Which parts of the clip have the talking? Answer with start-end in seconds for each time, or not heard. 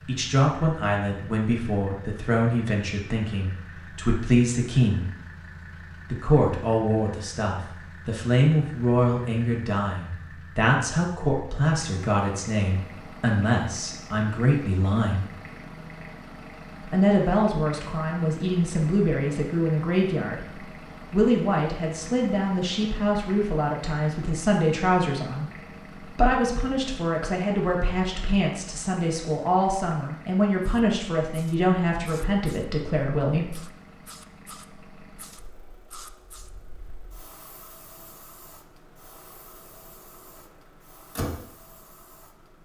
0.1-5.1, 6.1-15.2, 16.9-33.5.